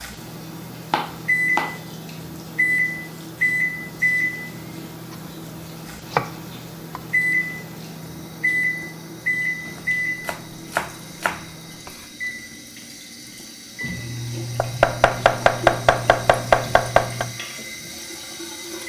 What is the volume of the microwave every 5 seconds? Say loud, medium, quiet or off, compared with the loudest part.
loud, loud, medium, medium.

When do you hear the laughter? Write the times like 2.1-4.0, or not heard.
not heard.